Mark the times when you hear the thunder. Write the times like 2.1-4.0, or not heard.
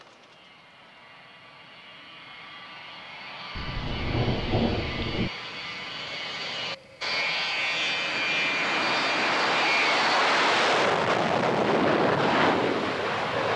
3.5-5.3.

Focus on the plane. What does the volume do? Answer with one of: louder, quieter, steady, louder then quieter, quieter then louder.
louder.